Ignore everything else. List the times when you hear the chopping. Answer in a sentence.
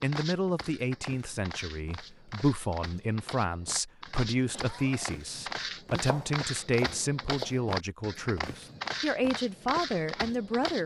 You can hear the chopping from 5.9 to 7.5 s.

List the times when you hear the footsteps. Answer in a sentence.
The footsteps can be heard from 0.0 to 10.8 s.